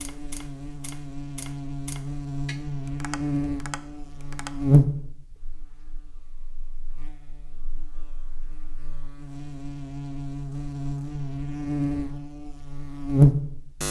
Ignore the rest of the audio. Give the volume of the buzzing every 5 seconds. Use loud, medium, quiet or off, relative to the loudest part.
loud, quiet, loud.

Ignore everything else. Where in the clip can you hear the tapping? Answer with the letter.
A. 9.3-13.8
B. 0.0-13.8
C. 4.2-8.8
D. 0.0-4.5
D.